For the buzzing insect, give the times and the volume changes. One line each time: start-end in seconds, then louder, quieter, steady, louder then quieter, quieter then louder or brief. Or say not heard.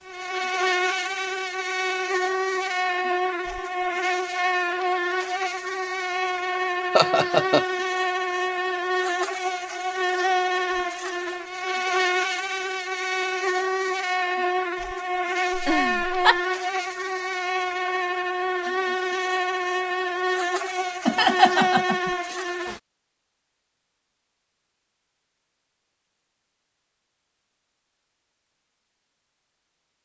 0.0-22.8 steady.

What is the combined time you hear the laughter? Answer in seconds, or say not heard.
3 s.